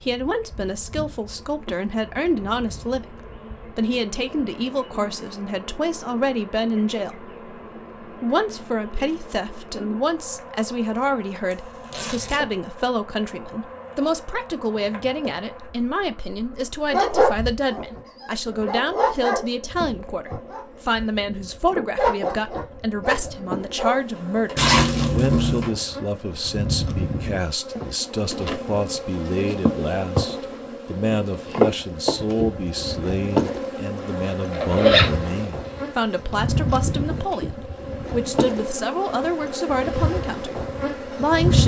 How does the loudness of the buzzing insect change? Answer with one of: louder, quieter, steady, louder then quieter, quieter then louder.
louder.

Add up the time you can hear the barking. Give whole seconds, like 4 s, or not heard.
8 s.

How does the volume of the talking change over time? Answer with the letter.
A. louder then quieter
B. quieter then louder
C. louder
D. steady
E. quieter
D.